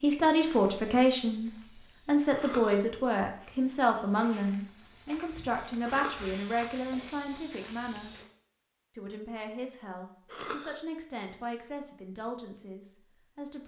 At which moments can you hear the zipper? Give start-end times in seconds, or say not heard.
not heard.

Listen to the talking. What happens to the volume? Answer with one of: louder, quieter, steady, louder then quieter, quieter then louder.
quieter.